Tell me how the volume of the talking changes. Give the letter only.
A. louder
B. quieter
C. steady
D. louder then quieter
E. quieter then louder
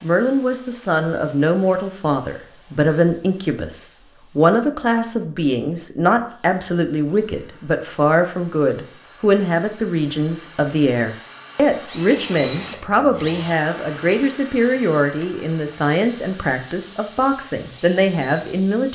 C.